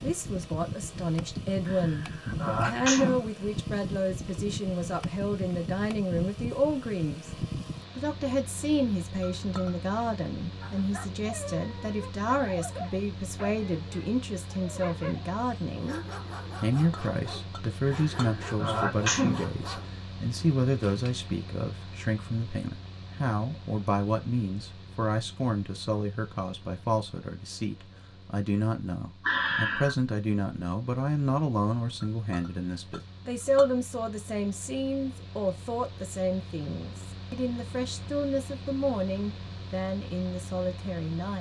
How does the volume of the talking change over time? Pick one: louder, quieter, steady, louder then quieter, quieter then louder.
steady.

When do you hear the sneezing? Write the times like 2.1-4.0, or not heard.
1.6-3.2, 17.9-19.4, 29.2-29.9.